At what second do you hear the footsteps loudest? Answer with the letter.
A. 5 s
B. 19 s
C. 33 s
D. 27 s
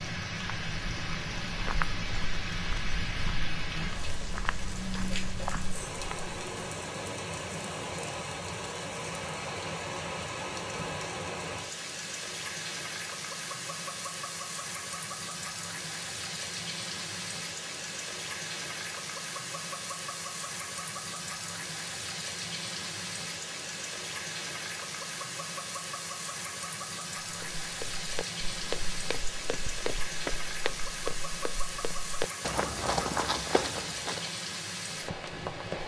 C.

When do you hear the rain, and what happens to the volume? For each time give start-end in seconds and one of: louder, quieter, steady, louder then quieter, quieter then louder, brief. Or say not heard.
0.0-35.8 steady.